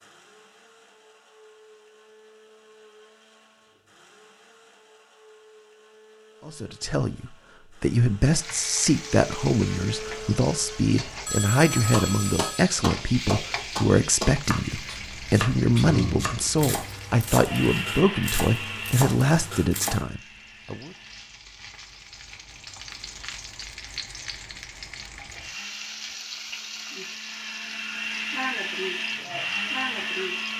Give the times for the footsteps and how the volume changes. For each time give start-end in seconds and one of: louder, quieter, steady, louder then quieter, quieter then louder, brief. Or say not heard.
not heard.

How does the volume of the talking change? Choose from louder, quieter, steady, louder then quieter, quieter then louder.
steady.